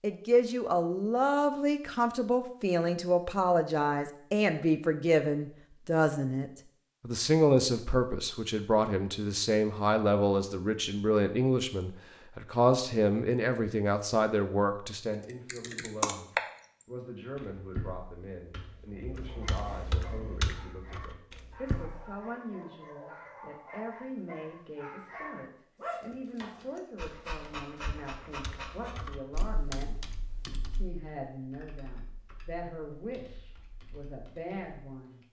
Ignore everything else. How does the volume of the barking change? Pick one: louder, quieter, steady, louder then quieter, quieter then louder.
louder.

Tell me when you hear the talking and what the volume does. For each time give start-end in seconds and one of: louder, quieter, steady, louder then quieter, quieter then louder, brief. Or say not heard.
0.0-30.1 quieter
30.7-35.2 quieter then louder.